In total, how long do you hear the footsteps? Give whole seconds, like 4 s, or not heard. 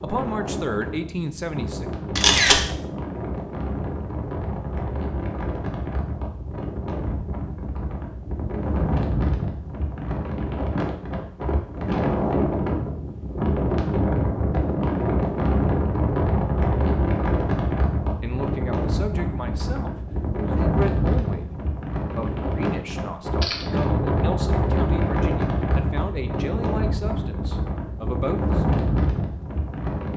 not heard.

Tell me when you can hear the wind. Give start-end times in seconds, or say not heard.
0.0-30.1.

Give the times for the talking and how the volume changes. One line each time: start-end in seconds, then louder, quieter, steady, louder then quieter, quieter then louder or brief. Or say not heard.
0.0-1.9 brief
18.2-28.6 steady.